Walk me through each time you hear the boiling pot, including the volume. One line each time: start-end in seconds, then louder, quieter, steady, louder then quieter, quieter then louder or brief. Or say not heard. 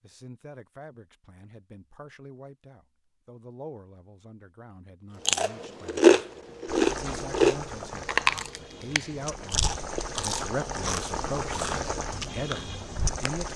6.7-13.5 quieter then louder.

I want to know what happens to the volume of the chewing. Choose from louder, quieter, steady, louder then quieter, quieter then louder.
quieter.